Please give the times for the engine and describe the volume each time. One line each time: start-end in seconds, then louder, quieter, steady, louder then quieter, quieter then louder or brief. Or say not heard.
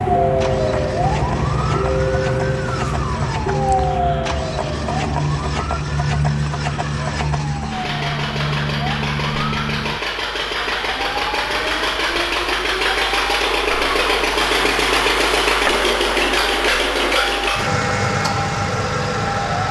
0.2-19.6 louder.